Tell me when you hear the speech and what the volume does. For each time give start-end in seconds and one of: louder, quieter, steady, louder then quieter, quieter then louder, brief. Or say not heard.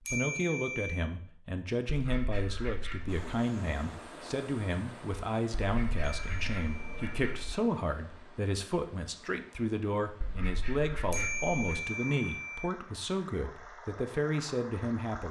0.1-15.2 steady.